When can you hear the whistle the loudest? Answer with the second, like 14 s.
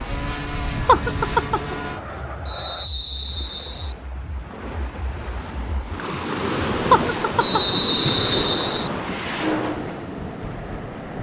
8 s.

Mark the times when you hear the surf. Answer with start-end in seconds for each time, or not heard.
0.0-11.1.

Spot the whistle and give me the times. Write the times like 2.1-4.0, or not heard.
2.5-4.0, 7.4-8.9.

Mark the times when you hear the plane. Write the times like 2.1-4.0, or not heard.
0.0-2.9, 8.8-11.1.